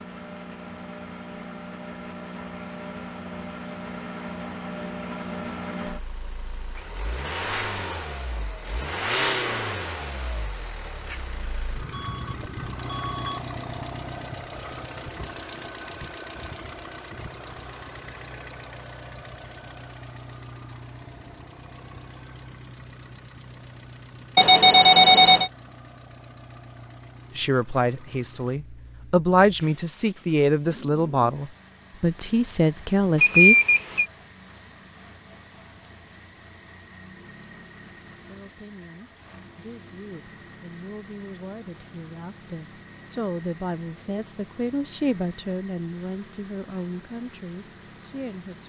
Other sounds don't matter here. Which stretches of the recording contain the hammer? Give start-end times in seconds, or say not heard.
not heard.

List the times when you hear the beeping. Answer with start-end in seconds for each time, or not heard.
11.9-13.4, 24.4-25.5, 33.2-34.0.